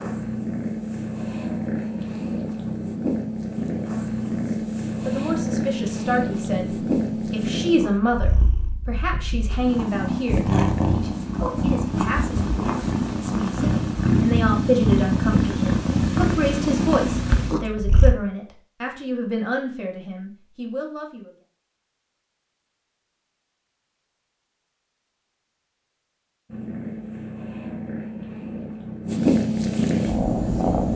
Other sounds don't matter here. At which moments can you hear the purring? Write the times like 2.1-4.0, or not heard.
0.0-18.1, 26.4-30.9.